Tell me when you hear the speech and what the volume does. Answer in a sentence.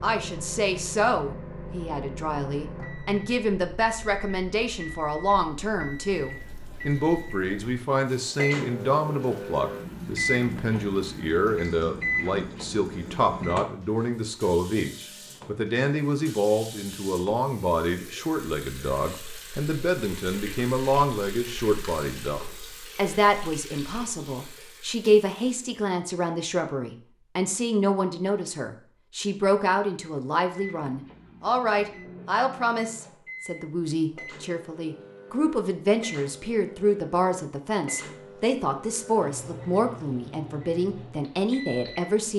You can hear the speech from 0.0 to 42.3 s, at a steady volume.